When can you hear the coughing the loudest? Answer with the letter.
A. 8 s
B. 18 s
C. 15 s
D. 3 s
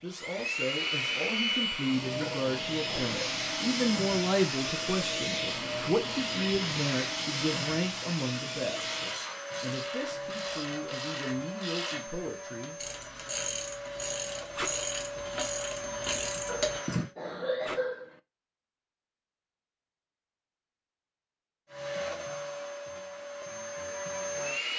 B.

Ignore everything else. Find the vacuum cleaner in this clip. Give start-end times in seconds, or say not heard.
0.0-17.1, 21.6-24.7.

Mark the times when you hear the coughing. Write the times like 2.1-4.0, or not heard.
2.2-3.4, 16.4-18.1.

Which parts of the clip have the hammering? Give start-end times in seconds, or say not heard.
not heard.